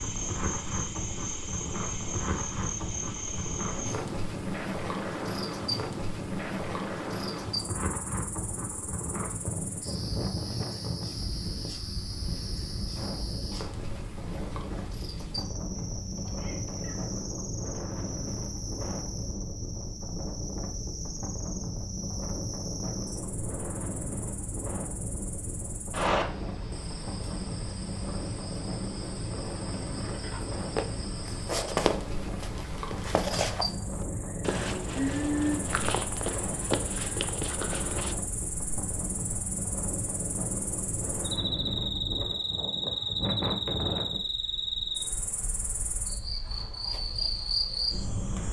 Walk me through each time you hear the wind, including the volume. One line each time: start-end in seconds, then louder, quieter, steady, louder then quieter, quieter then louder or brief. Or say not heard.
0.0-48.4 steady.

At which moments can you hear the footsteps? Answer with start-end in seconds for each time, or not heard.
30.8-38.1.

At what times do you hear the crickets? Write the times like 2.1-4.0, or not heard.
0.0-48.4.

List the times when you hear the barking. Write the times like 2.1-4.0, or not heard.
not heard.